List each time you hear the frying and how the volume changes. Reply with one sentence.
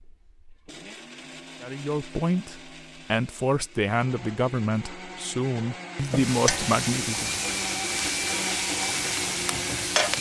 The frying can be heard from 6.0 to 10.1 s, at a steady volume.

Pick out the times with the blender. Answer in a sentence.
The blender can be heard from 0.0 to 10.1 s.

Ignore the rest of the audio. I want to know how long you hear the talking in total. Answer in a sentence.
You can hear the talking for 6 seconds altogether.